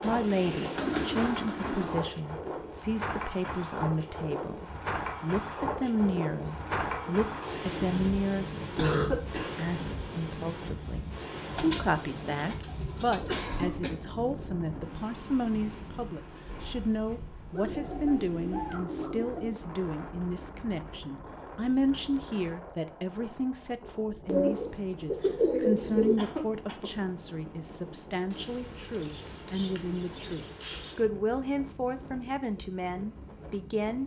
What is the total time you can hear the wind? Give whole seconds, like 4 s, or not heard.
34 s.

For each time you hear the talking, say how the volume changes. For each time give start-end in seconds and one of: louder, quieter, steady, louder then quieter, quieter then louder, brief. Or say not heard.
0.0-34.0 steady.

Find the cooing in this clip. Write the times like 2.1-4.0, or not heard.
0.0-2.0, 6.3-8.0, 11.4-13.5, 17.5-19.6, 23.9-26.2, 28.3-31.1.